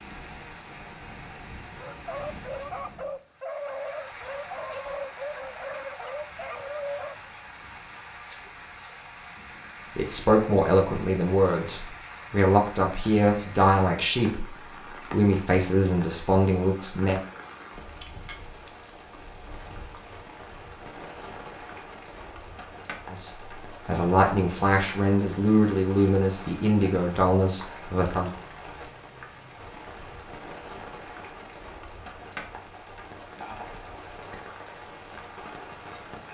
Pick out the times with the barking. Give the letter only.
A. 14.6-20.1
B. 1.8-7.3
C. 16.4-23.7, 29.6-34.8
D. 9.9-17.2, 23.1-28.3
B.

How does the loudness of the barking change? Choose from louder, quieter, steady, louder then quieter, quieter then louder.
steady.